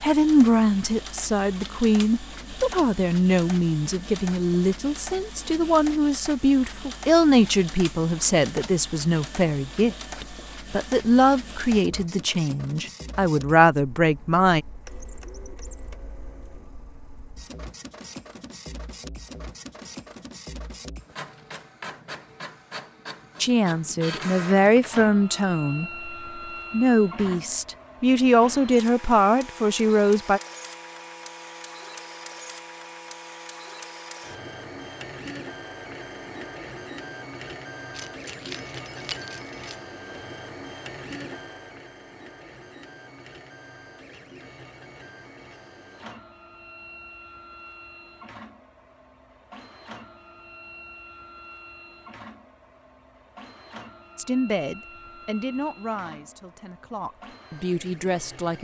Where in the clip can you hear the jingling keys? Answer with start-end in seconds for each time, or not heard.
37.9-39.8.